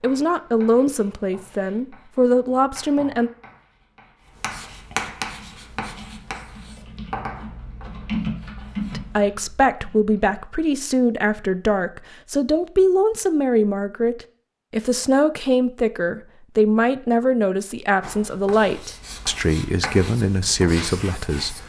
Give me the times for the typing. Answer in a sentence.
The typing can be heard from 5.2 to 10.4 s.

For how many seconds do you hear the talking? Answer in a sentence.
The talking can be heard for 16 seconds in total.